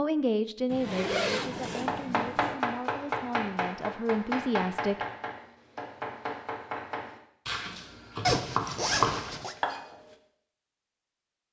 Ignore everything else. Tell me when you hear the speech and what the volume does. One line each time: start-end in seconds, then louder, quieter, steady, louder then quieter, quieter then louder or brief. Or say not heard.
0.0-5.0 quieter then louder.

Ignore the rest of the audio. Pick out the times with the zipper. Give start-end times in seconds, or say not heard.
0.7-2.5, 8.2-9.6.